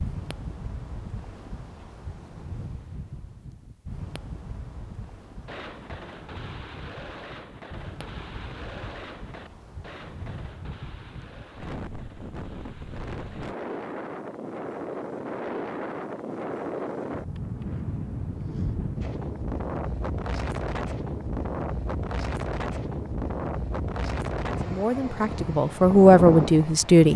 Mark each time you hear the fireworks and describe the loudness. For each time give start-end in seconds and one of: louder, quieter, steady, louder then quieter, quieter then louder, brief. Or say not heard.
5.5-13.6 quieter.